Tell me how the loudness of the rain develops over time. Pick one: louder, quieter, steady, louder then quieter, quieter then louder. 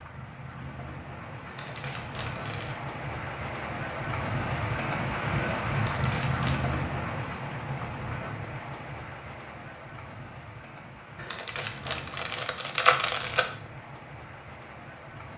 louder then quieter.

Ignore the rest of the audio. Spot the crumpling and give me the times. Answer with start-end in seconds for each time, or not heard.
1.4-2.8, 5.8-6.8, 11.2-13.5.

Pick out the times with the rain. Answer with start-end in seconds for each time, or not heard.
0.0-15.3.